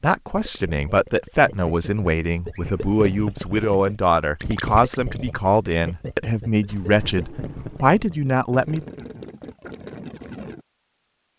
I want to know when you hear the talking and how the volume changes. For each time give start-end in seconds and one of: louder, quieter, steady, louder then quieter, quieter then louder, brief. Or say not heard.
0.0-8.8 steady.